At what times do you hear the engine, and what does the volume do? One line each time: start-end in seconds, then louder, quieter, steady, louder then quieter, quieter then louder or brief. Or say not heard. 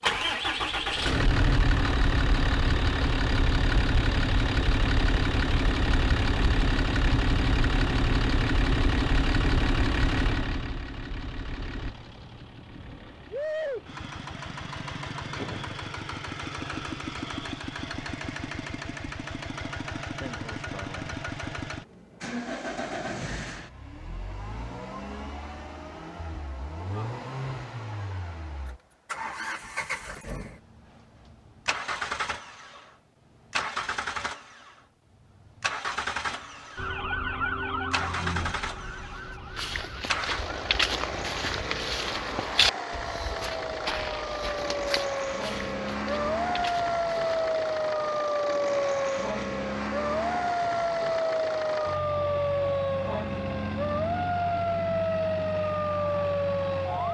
0.0-57.1 quieter.